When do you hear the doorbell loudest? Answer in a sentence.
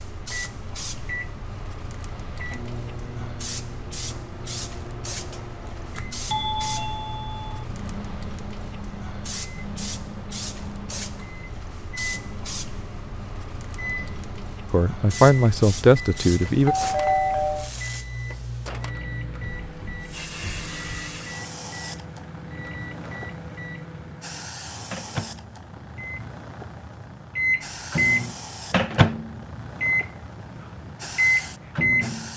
The volume of the doorbell peaks at 17 seconds.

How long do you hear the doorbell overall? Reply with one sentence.
The doorbell can be heard for 3 seconds in total.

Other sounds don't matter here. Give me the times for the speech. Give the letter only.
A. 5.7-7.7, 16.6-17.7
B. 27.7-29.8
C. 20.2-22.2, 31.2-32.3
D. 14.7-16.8
D.